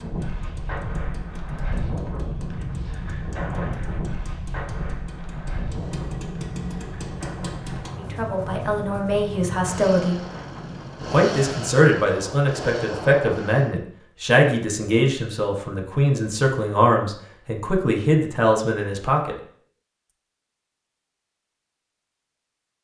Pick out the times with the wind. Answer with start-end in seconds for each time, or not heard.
0.0-13.4.